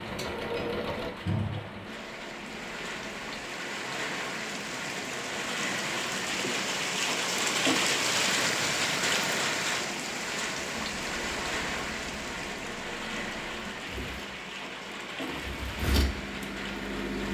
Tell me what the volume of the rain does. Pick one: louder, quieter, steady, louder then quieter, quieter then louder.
louder then quieter.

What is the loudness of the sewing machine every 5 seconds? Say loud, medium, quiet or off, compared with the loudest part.
loud, off, medium, loud.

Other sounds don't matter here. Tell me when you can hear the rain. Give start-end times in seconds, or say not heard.
0.0-17.2.